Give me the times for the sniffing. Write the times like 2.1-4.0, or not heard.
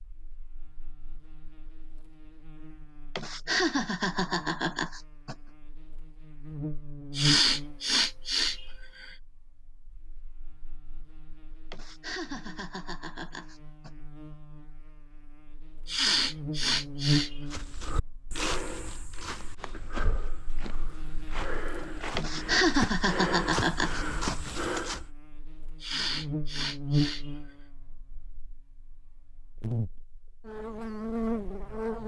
7.2-9.2, 15.8-17.4, 25.8-27.3.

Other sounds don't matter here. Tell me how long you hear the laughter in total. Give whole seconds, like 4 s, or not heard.
7 s.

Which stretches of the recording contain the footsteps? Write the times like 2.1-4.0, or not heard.
17.5-25.1.